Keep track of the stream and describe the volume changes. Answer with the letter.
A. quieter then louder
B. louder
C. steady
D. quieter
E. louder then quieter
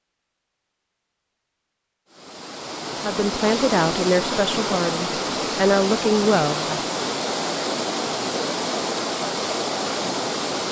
C.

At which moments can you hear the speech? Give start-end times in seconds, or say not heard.
3.0-7.0.